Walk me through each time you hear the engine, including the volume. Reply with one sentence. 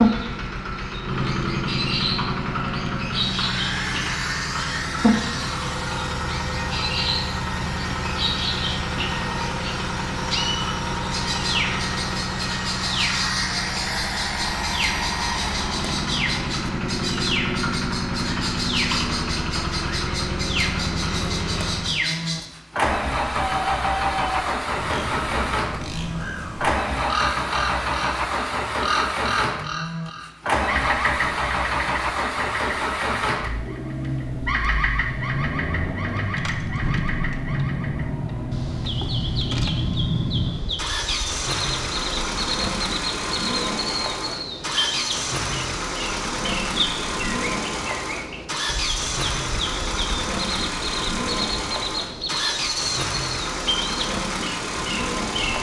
You can hear the engine from 0.0 to 55.5 s, at a steady volume.